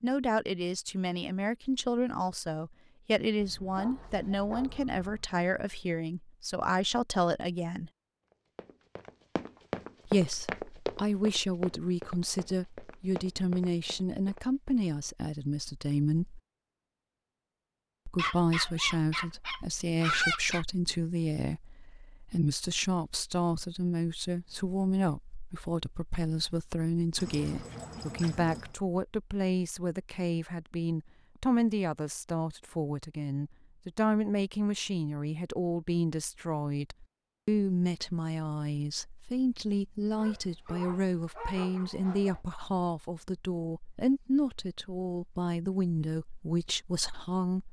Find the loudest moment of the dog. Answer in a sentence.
The loudest moment of the dog is at 20 seconds.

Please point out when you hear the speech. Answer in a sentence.
The speech can be heard from 0.0 to 7.9 s, from 10.1 to 16.4 s and from 18.1 to 47.6 s.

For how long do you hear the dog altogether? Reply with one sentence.
You can hear the dog for 8 seconds altogether.